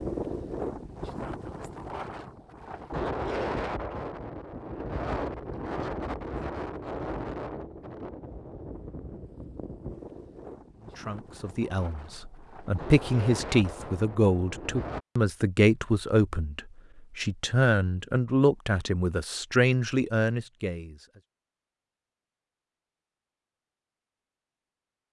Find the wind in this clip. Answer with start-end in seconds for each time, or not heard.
0.0-15.0.